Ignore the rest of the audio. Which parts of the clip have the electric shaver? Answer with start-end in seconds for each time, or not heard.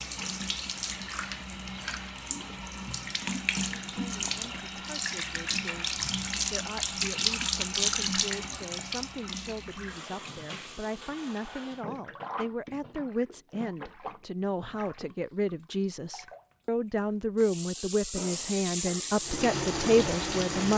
not heard.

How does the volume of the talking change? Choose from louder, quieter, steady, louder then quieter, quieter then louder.
louder.